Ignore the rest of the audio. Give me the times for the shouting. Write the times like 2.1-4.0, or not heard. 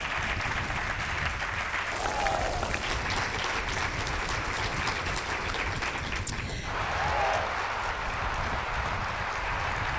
1.9-2.7, 7.0-7.5.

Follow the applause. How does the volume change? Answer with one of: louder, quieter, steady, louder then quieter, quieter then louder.
steady.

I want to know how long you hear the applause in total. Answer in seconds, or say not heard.
10 s.